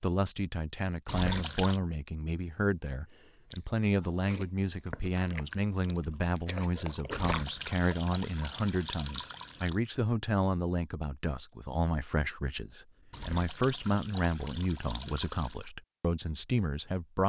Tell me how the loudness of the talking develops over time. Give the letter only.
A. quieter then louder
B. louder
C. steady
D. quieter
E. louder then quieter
C.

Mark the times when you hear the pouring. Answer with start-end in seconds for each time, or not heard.
1.1-1.8, 7.1-9.8, 13.1-15.7.